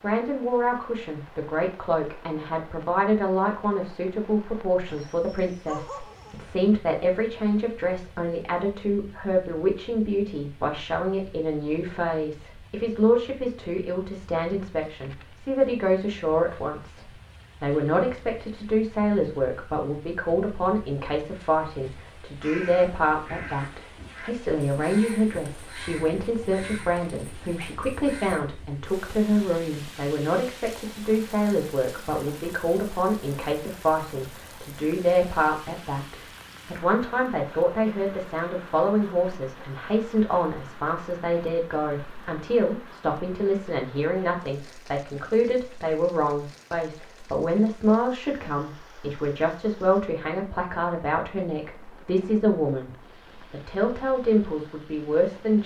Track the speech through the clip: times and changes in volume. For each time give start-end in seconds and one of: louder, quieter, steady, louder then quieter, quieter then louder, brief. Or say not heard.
0.0-52.9 steady
53.5-55.6 brief.